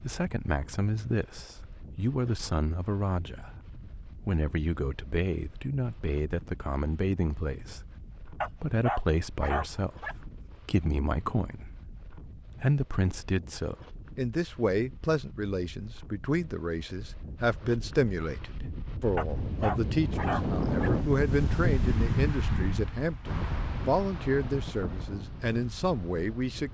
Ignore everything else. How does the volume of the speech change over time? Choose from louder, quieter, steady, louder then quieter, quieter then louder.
steady.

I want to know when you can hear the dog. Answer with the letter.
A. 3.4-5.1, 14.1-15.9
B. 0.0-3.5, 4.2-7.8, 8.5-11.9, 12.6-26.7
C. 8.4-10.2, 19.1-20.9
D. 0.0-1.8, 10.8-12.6
C.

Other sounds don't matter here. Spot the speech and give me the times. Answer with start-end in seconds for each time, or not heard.
0.0-3.5, 4.2-7.8, 8.5-11.9, 12.6-26.7.